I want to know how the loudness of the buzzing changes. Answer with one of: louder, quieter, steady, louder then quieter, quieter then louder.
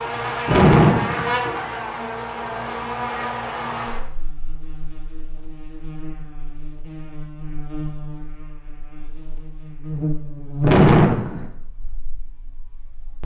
quieter then louder.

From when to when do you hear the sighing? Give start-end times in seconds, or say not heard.
0.5-1.3, 10.6-11.4.